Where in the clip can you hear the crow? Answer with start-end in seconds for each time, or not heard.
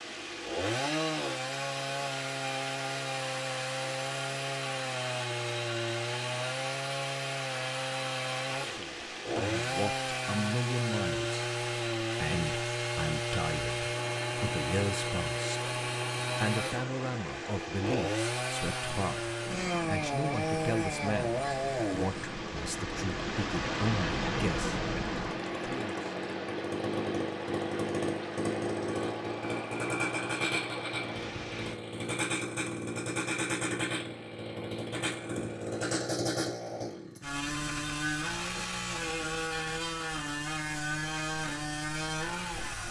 not heard.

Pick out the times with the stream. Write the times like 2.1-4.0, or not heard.
0.0-31.8.